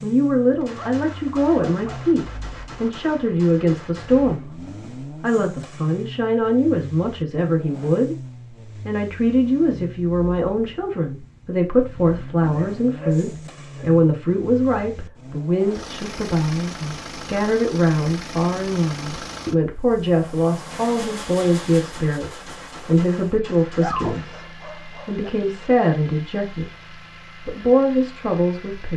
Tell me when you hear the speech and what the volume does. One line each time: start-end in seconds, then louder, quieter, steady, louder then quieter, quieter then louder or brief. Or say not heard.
0.0-28.9 steady.